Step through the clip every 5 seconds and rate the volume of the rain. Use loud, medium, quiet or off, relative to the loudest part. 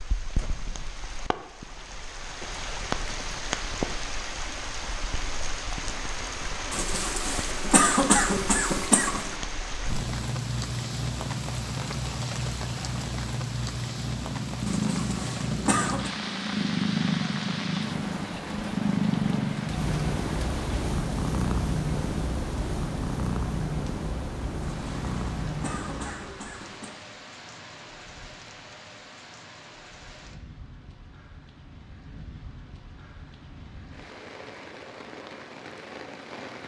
loud, loud, loud, loud, medium, quiet, quiet, medium.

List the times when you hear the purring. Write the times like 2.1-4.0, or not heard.
14.1-26.4.